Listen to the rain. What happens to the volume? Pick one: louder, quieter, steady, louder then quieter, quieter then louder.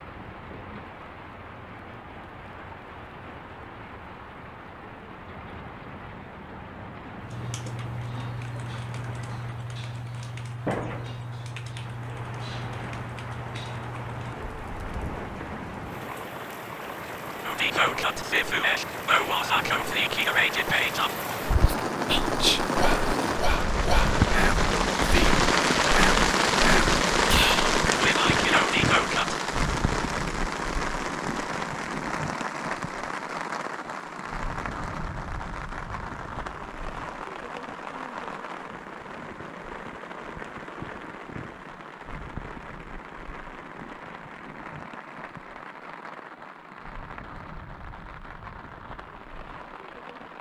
louder then quieter.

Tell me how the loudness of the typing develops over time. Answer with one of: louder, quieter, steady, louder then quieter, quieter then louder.
steady.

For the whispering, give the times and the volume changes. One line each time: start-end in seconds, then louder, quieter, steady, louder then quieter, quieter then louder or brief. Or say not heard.
17.4-29.4 steady.